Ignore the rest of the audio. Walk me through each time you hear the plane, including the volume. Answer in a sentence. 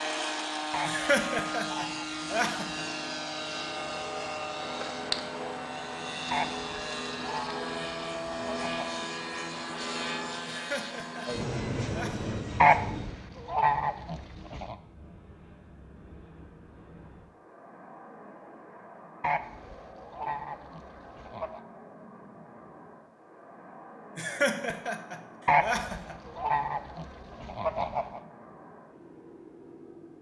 The plane can be heard from 0.0 to 30.1 s, getting quieter.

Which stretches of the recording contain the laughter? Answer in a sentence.
The laughter can be heard from 0.8 to 2.9 s, from 10.4 to 12.2 s and from 24.1 to 26.1 s.